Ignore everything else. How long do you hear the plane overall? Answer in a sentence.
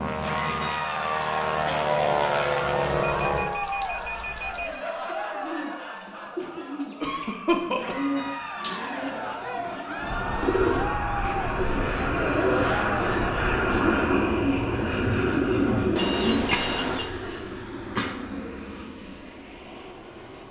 The plane can be heard for 14 seconds in total.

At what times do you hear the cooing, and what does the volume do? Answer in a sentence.
You can hear the cooing from 4.6 to 16.4 s, getting louder.